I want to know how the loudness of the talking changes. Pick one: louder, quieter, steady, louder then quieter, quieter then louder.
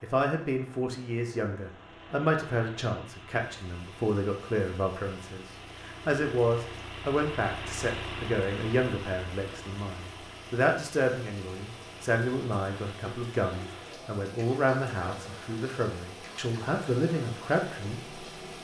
steady.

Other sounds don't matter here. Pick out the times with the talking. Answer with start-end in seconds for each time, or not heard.
0.0-18.2.